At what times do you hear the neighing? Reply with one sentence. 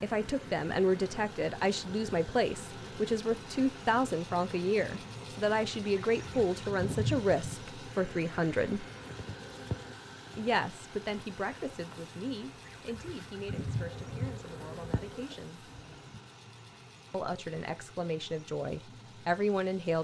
The neighing can't be heard in this clip.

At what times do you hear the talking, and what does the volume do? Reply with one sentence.
The talking can be heard from 0.0 to 8.8 s, at a steady volume; from 10.3 to 15.7 s, getting quieter; and briefly from 17.1 to 20.0 s.